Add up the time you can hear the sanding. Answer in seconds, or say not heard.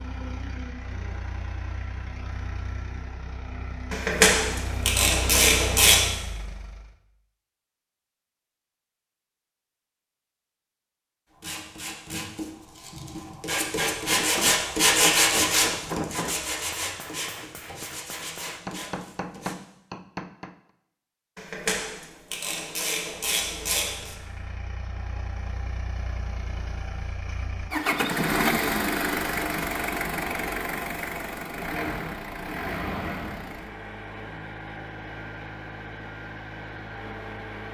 8 s.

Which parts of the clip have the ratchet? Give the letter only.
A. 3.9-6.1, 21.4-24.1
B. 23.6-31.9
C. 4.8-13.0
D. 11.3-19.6
A.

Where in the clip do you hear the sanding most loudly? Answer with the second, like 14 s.
15 s.